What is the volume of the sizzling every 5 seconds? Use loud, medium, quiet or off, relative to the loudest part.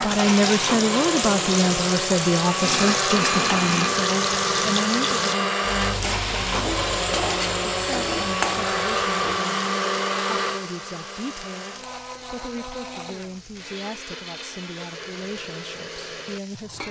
loud, loud, quiet, quiet.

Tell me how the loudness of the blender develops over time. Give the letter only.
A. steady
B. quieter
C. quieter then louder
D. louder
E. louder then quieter
B.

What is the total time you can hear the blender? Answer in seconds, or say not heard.
17 s.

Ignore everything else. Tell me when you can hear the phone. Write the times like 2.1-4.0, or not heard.
2.6-4.1.